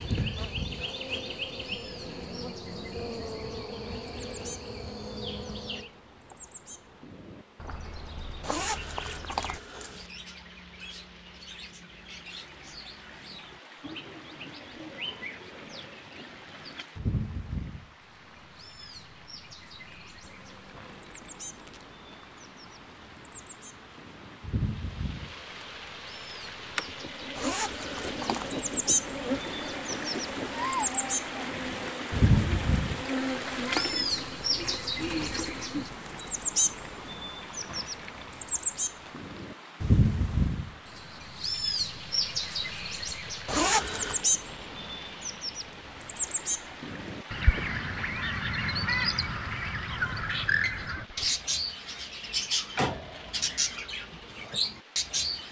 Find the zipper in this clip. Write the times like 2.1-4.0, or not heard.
8.4-10.1, 27.4-28.5, 43.5-44.2.